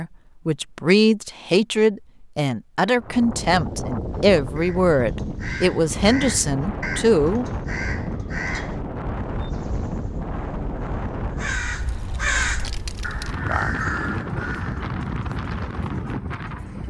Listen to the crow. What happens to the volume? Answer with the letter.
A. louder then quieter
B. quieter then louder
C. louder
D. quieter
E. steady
B.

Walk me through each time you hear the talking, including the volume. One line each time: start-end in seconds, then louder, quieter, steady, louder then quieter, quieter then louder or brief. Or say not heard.
0.0-7.5 steady.